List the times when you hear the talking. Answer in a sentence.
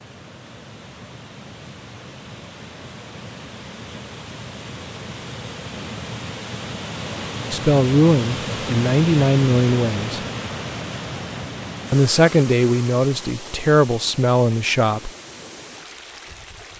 You can hear the talking from 7.5 to 10.2 s and from 11.9 to 15.1 s.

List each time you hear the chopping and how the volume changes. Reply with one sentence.
You can't hear the chopping here.